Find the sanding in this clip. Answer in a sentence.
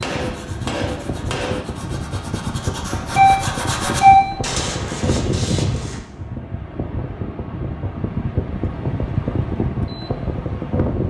The sanding can be heard from 0.2 to 6.0 s.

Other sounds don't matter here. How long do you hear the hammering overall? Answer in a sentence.
The hammering can be heard for 2 seconds in total.